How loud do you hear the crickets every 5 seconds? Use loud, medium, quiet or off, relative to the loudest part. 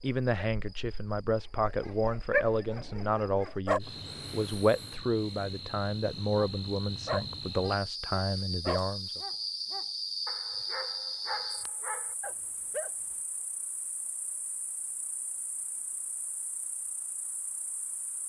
medium, loud, loud, quiet.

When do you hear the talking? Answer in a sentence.
You can hear the talking from 0.0 to 9.2 s.